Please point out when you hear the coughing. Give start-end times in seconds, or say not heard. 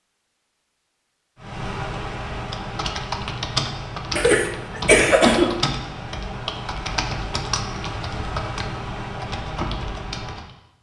4.2-5.6.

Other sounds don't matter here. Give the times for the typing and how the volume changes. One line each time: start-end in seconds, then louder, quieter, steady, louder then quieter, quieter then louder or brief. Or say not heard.
1.4-10.5 steady.